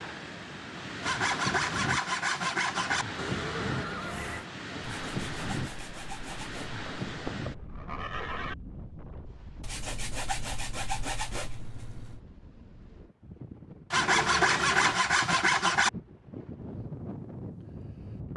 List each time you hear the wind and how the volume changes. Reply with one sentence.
The wind can be heard from 0.0 to 18.3 s, getting quieter then louder.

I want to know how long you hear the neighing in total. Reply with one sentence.
The neighing can be heard for 4 seconds in total.